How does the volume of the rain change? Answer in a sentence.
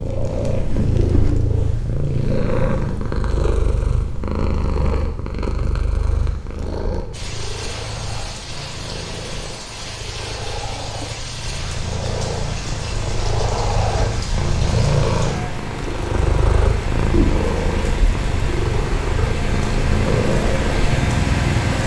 The volume of the rain goes up.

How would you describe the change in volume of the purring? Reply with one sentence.
The loudness of the purring goes down, then up.